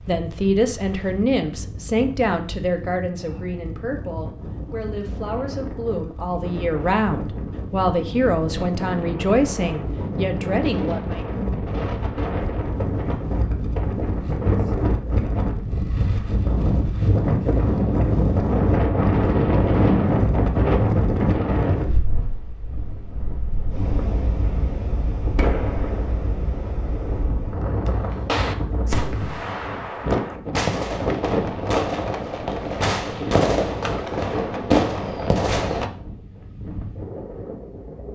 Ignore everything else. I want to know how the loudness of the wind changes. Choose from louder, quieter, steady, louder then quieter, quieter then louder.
louder then quieter.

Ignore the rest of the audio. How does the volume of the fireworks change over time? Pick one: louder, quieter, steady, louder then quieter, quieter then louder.
louder.